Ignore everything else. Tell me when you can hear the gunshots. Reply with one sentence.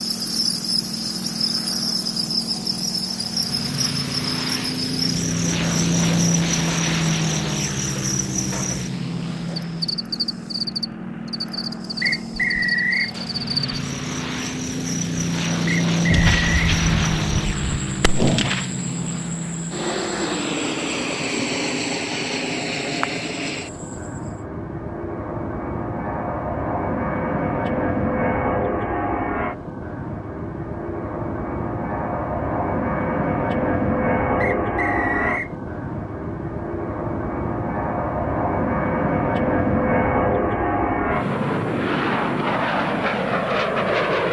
You can hear the gunshots from 16.1 to 18.6 s.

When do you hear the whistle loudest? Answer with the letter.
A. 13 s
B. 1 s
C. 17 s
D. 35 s
A.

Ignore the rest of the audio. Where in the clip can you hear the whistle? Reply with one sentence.
You can hear the whistle from 12.0 to 13.1 s, from 15.7 to 16.7 s and from 34.4 to 35.5 s.